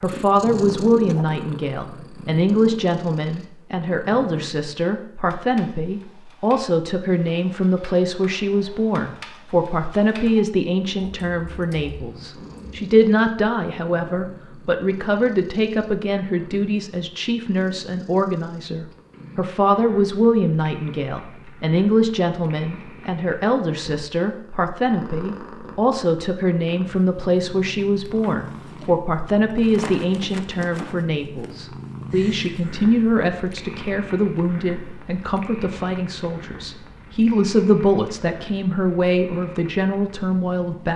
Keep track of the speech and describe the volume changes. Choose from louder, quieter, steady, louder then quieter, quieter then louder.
steady.